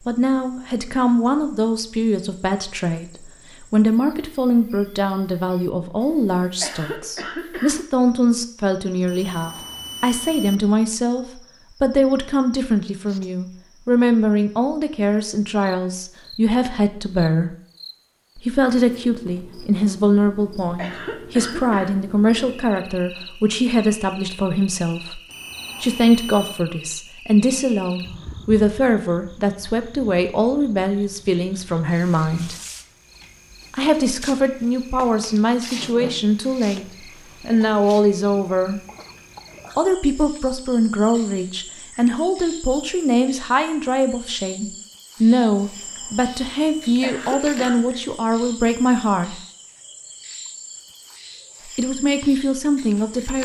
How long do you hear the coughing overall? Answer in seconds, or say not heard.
4 s.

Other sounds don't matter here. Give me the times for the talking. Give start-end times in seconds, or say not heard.
0.1-17.6, 18.4-25.2, 25.8-32.5, 33.7-38.8, 39.8-49.4, 51.8-53.3.